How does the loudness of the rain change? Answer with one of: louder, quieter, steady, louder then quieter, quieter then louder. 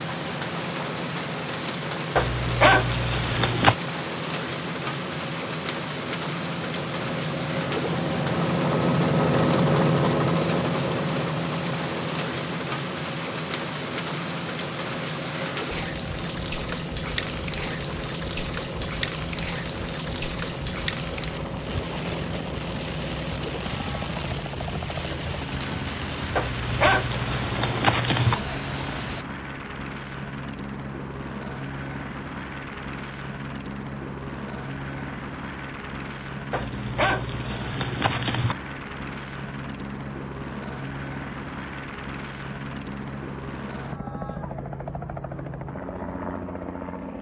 steady.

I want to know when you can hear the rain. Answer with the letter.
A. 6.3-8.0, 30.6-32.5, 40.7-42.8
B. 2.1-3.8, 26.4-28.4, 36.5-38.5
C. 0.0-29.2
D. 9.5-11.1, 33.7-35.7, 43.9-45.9
C.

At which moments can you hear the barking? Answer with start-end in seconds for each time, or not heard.
2.1-3.8, 26.4-28.4, 36.5-38.5.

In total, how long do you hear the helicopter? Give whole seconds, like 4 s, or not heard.
47 s.